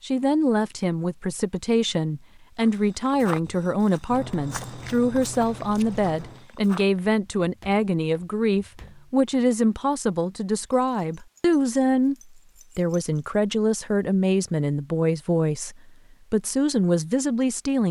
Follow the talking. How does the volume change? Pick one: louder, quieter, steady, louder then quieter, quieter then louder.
steady.